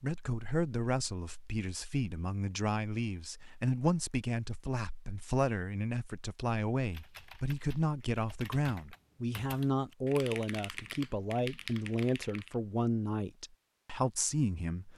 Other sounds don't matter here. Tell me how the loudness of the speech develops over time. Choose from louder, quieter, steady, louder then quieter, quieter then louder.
steady.